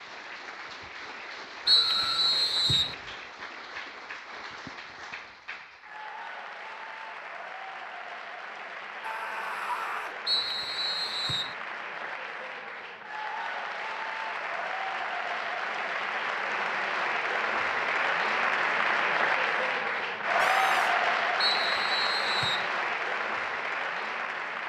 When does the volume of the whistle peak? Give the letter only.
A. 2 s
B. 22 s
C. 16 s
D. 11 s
A.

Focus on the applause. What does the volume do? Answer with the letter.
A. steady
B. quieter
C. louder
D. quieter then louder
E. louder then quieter
C.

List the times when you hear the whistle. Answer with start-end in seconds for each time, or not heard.
1.6-3.0, 10.2-11.6, 21.4-22.7.